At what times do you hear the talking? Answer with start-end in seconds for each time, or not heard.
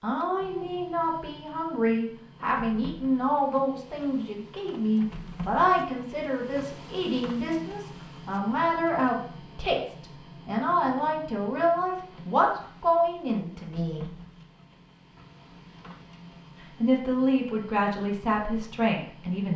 0.0-14.1, 16.8-19.5.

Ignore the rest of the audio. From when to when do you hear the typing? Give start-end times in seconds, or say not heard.
not heard.